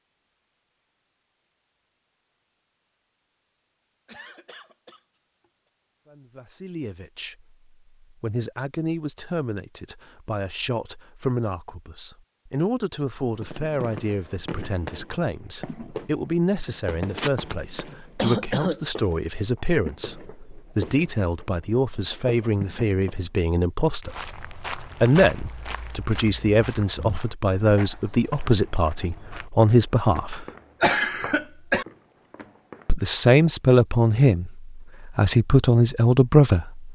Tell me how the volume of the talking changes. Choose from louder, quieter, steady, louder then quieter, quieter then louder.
louder.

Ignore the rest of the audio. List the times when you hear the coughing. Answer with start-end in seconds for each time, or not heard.
4.0-5.0, 17.1-18.8, 30.4-31.9.